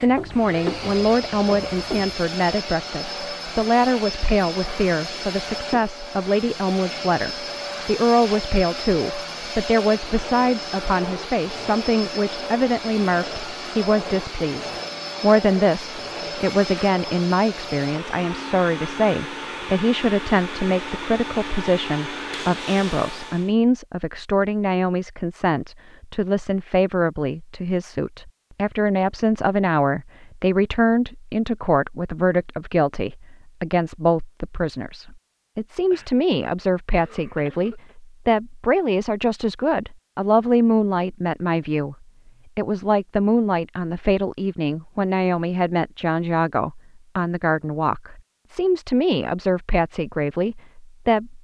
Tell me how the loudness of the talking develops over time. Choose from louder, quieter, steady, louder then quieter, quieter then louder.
steady.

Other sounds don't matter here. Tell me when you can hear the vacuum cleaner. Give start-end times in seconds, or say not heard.
0.0-23.6.